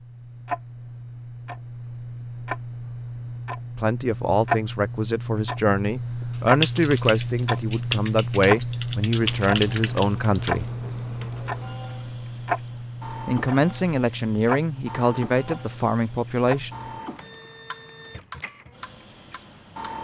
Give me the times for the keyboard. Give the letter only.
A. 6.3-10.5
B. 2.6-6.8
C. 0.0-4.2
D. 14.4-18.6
A.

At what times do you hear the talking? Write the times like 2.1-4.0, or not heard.
3.8-10.7, 13.2-16.7.